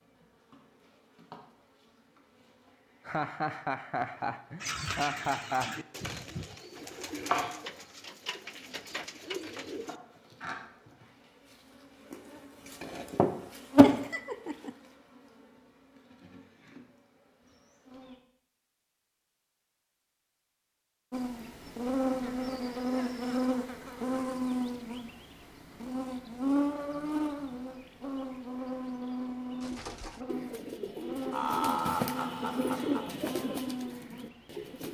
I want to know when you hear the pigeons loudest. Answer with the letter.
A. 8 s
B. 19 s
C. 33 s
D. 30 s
C.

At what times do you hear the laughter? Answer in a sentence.
You can hear the laughter from 3.0 to 5.8 s, from 13.8 to 14.8 s and from 31.3 to 33.1 s.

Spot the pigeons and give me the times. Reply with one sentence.
The pigeons can be heard from 4.6 to 9.9 s and from 29.6 to 34.8 s.